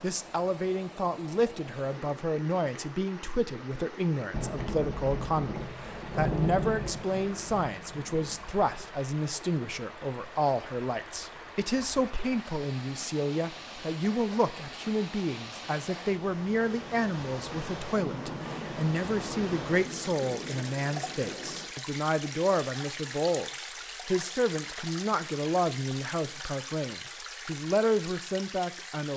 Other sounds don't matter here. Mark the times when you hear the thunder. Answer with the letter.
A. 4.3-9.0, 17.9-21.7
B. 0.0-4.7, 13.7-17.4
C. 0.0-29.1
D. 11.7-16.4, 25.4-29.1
A.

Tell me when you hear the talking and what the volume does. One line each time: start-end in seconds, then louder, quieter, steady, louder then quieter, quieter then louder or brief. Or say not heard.
0.0-29.1 steady.